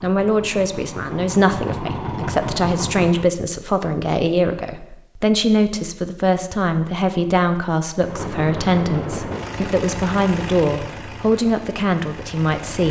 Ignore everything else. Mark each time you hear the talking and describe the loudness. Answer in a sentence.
You can hear the talking from 0.0 to 12.8 s, at a steady volume.